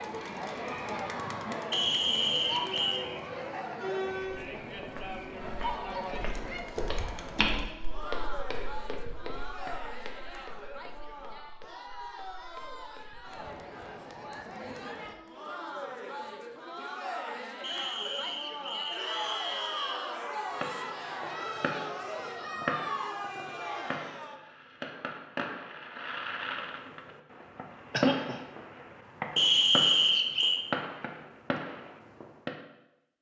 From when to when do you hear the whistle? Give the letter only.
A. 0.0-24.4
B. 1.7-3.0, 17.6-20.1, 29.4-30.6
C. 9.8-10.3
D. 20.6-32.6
B.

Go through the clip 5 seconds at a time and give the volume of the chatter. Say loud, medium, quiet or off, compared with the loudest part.
loud, loud, medium, loud, loud, off, off.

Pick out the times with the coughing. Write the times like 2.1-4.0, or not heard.
27.9-28.4.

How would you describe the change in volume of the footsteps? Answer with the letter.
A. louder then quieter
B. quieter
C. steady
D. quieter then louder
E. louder
A.